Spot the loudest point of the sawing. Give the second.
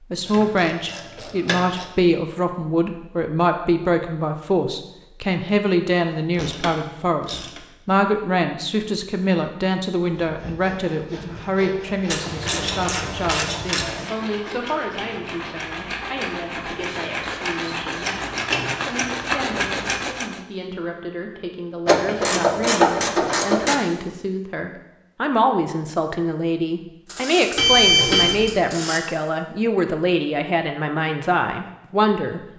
19 s.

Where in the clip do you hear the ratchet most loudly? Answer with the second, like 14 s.
23 s.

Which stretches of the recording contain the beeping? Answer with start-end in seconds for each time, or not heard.
27.6-28.5.